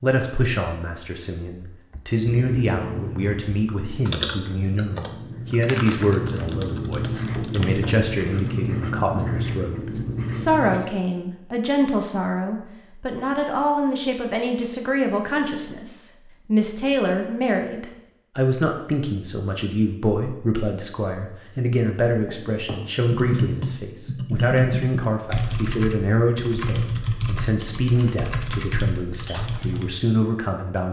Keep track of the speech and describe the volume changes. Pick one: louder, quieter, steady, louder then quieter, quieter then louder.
steady.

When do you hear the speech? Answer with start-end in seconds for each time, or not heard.
0.0-30.8.